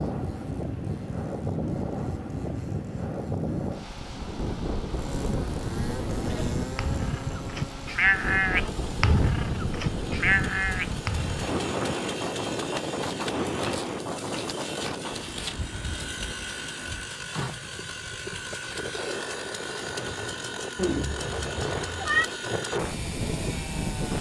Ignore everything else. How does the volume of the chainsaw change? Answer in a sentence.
The volume of the chainsaw goes up.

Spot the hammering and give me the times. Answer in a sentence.
The hammering can't be heard in this clip.